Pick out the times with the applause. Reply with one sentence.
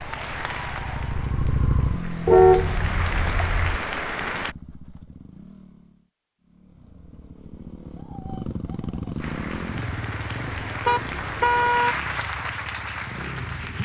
The applause can be heard from 0.0 to 4.5 s and from 9.2 to 13.8 s.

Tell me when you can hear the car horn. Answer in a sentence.
The car horn can be heard from 2.2 to 3.8 s and from 10.8 to 11.9 s.